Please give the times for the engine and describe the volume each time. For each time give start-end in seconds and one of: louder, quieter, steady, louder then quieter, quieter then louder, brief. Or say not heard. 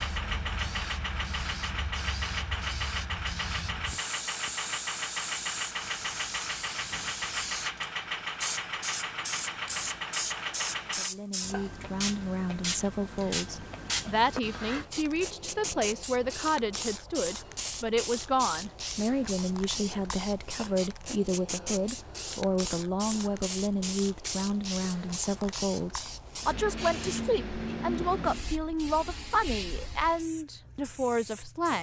0.0-11.1 steady.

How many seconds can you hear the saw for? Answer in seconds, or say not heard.
not heard.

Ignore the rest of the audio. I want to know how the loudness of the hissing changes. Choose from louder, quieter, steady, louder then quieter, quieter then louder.
steady.